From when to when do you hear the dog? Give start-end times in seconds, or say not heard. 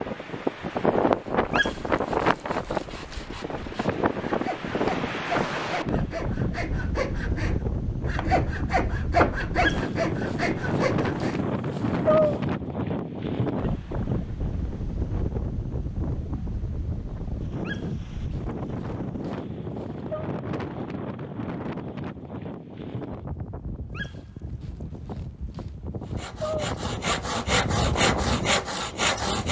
1.5-3.2, 9.6-12.4, 17.6-20.2, 23.9-26.6.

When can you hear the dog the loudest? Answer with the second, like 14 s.
12 s.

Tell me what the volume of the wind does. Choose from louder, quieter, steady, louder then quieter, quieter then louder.
quieter.